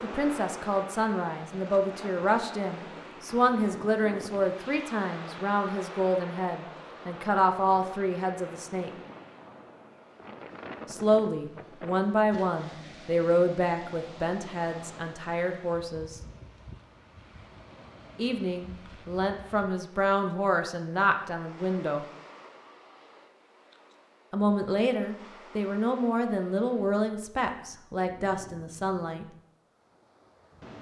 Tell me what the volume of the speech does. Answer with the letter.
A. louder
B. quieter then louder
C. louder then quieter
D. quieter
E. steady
E.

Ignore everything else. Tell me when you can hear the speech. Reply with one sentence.
The speech can be heard from 0.0 to 8.9 s, from 10.9 to 16.2 s, from 18.1 to 22.1 s and from 24.3 to 29.2 s.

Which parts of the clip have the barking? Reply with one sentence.
You can't hear the barking here.